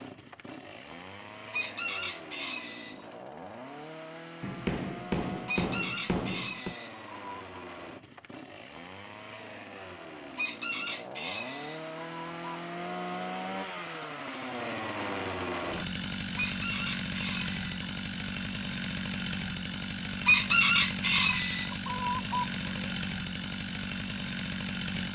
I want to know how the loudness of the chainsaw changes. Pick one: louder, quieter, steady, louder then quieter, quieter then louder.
louder.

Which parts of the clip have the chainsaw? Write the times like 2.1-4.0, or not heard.
0.0-25.1.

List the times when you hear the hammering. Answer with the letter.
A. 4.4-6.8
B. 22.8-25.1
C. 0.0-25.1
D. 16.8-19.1
A.